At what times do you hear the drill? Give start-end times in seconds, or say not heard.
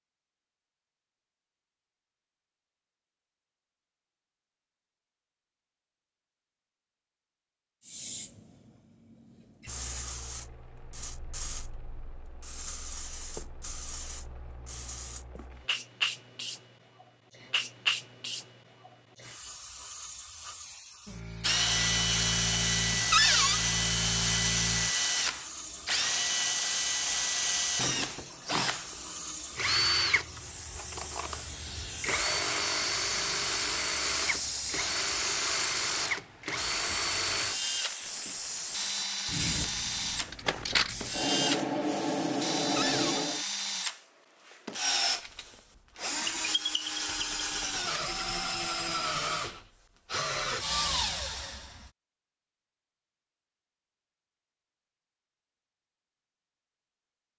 21.4-51.9.